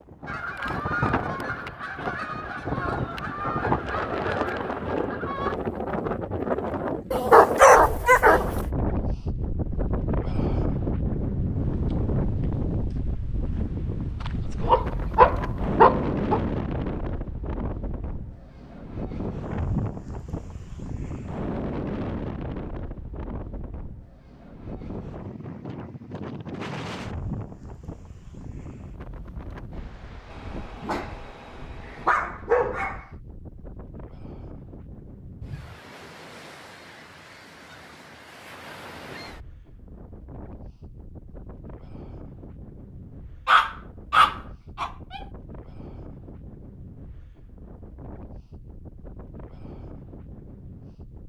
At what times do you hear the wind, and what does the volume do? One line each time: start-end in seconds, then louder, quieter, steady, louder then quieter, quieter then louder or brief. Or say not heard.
0.0-51.2 quieter.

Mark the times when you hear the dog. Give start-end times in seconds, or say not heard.
7.1-8.7, 14.2-16.4, 30.3-33.0, 43.5-45.2.